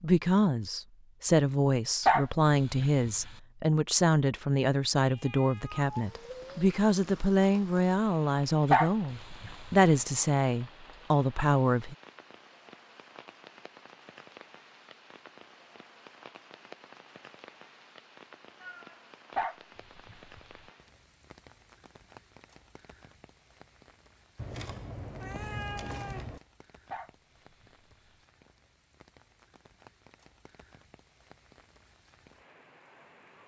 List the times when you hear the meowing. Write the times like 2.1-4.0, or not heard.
5.0-6.5, 18.6-19.1, 24.4-26.4.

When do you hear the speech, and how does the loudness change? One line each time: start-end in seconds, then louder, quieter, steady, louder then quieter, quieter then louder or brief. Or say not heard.
0.0-11.9 steady.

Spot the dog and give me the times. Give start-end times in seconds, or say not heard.
2.0-3.3, 8.7-9.9, 19.4-20.6, 26.9-28.1.